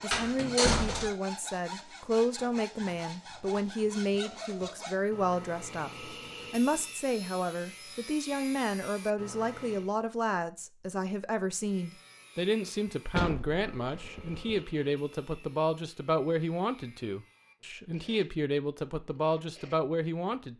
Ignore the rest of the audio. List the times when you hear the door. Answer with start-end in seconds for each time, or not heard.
0.1-1.1, 13.2-14.6.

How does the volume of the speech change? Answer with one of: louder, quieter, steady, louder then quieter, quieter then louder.
steady.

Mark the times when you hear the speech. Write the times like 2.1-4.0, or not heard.
0.0-20.5.